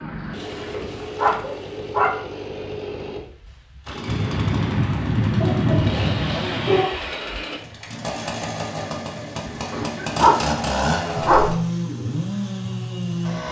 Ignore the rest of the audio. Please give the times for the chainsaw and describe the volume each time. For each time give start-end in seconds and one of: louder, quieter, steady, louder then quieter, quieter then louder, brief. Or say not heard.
0.0-13.4 louder.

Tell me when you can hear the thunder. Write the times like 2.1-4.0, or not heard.
4.0-6.9.